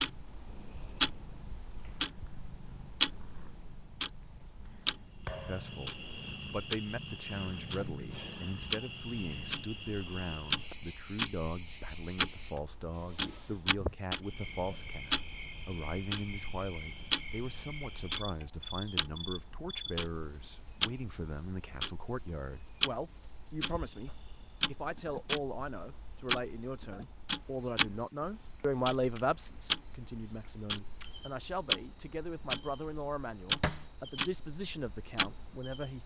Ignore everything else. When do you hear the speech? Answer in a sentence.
You can hear the speech from 5.5 to 36.0 s.